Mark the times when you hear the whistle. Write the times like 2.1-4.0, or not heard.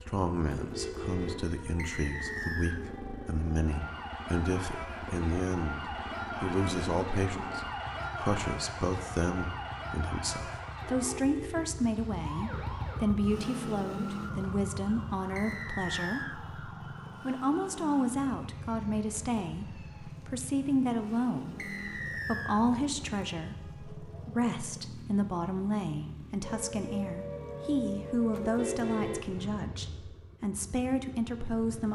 1.8-2.8, 15.3-16.4, 21.6-22.6.